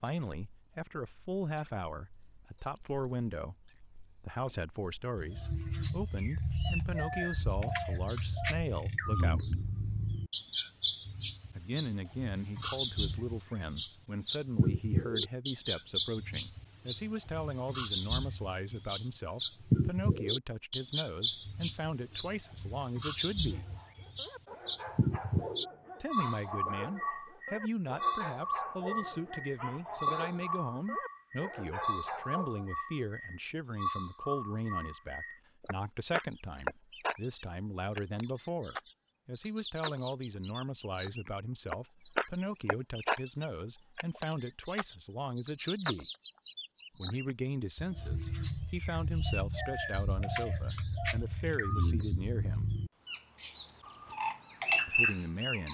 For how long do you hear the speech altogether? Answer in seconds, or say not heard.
48 s.